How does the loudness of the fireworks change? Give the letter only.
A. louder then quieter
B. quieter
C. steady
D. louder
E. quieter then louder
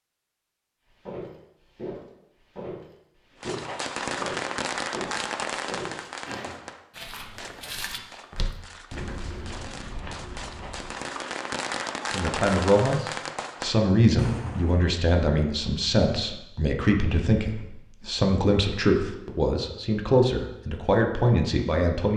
E.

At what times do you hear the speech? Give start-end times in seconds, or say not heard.
12.1-22.1.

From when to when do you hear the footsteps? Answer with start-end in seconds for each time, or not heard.
0.8-10.9.